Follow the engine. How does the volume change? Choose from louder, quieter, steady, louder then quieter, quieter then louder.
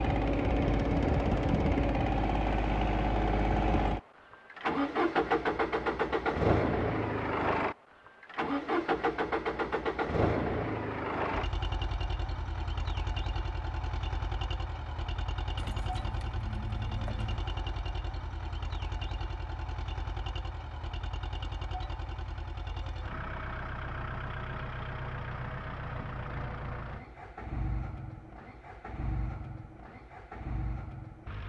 quieter.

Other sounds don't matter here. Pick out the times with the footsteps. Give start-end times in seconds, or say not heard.
not heard.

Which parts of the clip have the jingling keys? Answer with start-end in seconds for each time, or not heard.
15.6-17.4.